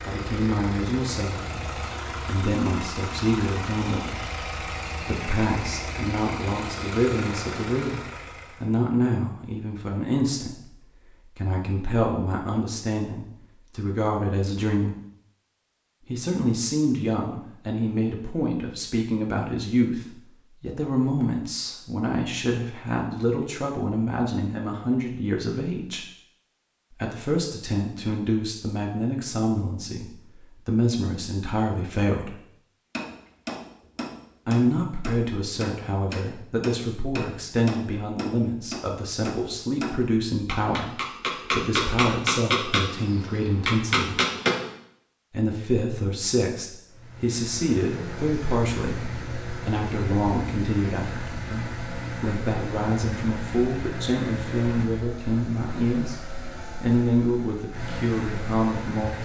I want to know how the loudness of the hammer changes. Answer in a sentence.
The volume of the hammer goes up.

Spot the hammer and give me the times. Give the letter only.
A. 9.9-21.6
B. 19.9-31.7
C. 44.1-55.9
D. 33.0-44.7
D.